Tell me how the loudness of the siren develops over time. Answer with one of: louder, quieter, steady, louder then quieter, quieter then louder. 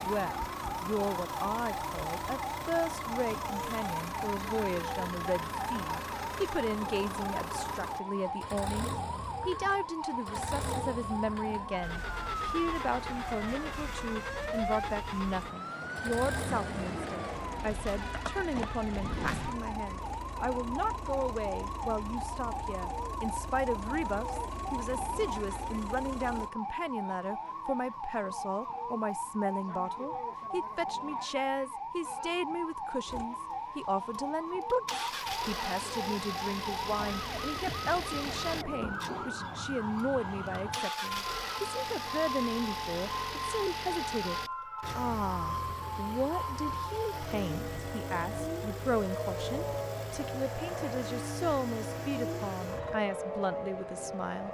steady.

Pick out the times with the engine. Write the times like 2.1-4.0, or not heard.
0.0-26.5, 33.0-53.0.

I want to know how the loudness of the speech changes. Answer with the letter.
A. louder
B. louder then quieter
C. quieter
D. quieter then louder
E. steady
E.